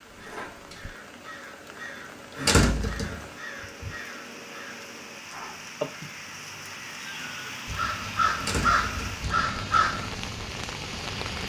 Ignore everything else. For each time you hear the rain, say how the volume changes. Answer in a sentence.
The rain can be heard from 0.0 to 11.4 s, getting louder.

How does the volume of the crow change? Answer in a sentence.
The loudness of the crow goes up.